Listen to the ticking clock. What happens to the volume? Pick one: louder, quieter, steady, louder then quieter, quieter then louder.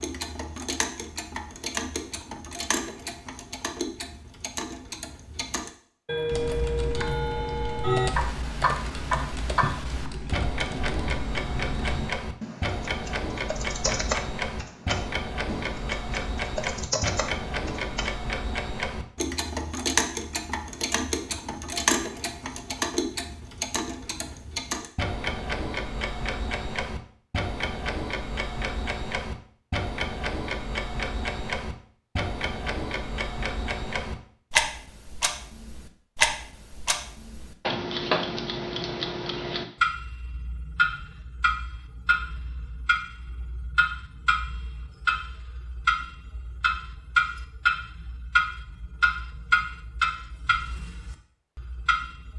steady.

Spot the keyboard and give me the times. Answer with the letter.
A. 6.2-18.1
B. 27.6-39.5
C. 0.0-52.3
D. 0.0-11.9
A.